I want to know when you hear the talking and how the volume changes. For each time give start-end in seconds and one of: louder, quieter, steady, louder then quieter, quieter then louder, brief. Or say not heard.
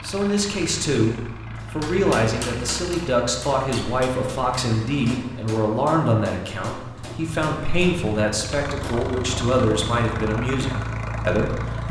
0.0-11.8 steady.